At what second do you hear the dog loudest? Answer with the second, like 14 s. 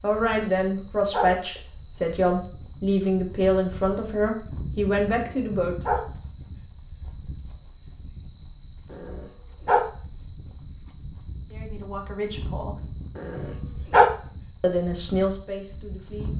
14 s.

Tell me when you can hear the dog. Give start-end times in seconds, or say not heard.
0.6-1.3, 5.1-6.0, 8.9-9.8, 13.2-14.1.